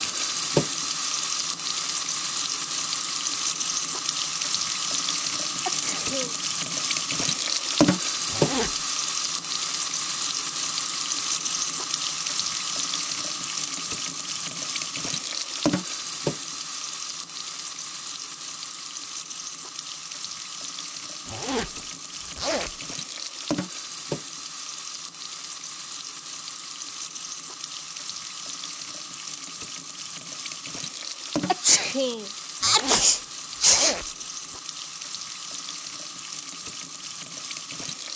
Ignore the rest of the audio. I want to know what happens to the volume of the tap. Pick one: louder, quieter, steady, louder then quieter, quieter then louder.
quieter.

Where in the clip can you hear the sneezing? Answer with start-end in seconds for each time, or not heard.
5.7-6.3, 31.4-34.0.